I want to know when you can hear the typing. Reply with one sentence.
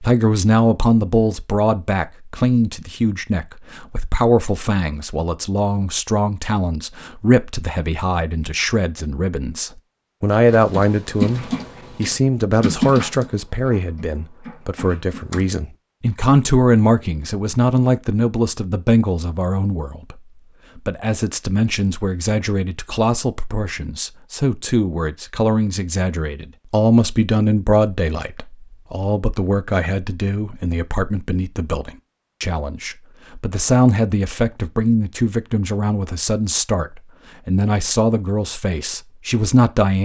The typing can be heard from 10.4 to 15.6 s.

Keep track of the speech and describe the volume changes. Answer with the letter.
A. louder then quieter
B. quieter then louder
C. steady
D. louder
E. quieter
C.